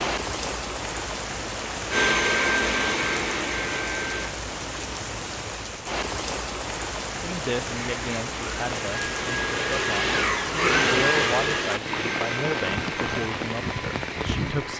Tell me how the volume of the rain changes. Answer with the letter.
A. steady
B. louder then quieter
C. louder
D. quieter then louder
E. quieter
A.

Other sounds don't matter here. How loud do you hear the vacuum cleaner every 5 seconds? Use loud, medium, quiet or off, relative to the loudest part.
loud, medium, loud.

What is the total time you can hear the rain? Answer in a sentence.
The rain can be heard for 15 seconds in total.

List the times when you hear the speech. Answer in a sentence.
The speech can be heard from 7.2 to 14.7 s.